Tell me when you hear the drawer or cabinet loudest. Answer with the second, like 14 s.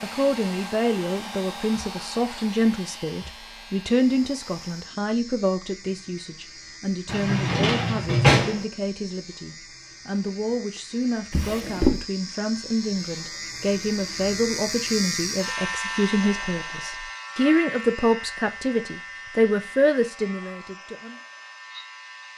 8 s.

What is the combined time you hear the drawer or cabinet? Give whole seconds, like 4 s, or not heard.
2 s.